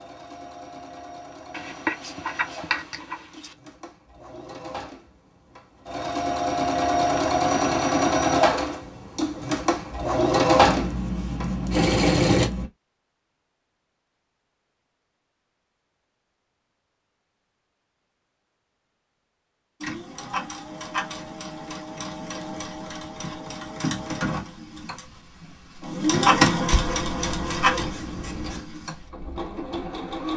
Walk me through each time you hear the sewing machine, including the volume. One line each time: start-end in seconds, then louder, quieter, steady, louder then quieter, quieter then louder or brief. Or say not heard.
0.0-12.5 louder
19.8-30.3 louder then quieter.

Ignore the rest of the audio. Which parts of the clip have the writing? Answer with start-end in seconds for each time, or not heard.
1.5-3.5, 10.7-12.7, 26.7-28.6.